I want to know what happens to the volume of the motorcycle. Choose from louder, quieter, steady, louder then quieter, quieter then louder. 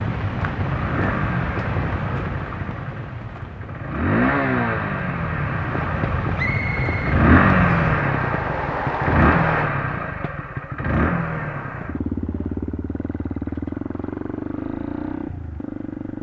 louder then quieter.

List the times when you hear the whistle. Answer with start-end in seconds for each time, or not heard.
6.3-8.0.